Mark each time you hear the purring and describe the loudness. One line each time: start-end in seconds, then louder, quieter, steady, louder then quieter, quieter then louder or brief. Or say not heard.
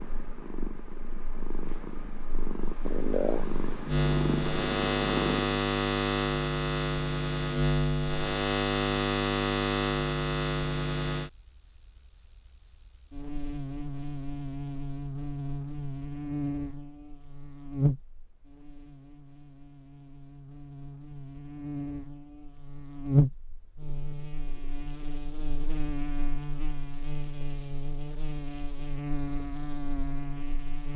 0.0-5.4 louder.